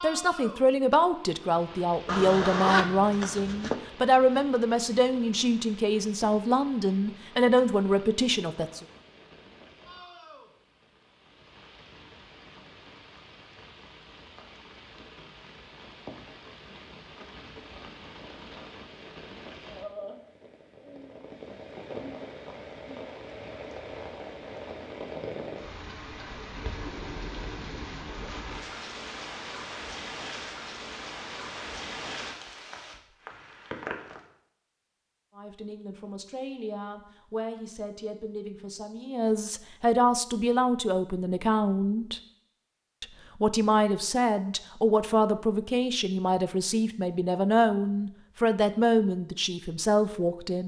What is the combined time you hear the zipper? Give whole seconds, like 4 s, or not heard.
2 s.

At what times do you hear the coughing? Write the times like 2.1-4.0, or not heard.
not heard.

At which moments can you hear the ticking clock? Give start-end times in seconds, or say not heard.
not heard.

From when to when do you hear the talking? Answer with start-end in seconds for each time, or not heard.
0.0-8.8, 35.4-42.2, 43.0-50.6.